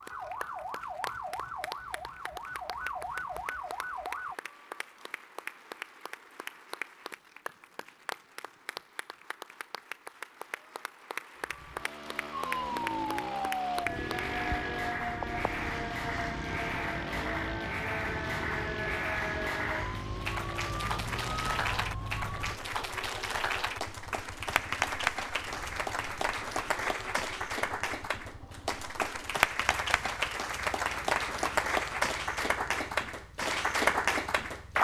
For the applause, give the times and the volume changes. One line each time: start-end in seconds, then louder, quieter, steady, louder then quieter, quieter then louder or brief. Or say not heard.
0.0-34.7 louder.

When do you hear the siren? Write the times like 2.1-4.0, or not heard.
0.0-4.3, 12.3-22.6.